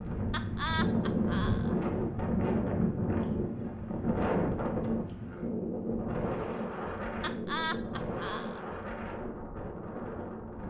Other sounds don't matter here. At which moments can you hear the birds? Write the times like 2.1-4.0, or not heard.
not heard.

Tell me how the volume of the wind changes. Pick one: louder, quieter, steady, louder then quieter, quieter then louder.
quieter.